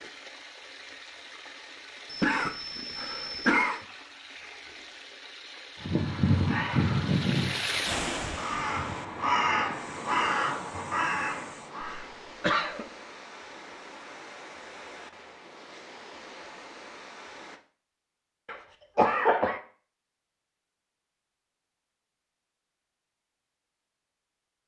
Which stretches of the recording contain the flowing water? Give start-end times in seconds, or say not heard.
0.0-17.6.